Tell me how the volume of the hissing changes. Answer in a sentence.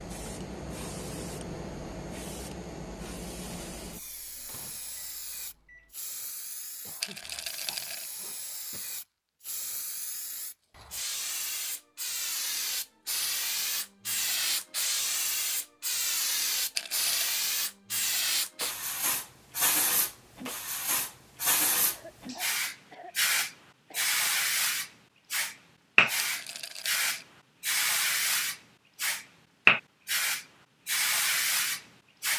The volume of the hissing goes up.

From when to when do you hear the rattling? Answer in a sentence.
The rattling can be heard from 7.0 to 8.1 s, from 16.8 to 17.4 s and from 26.2 to 27.2 s.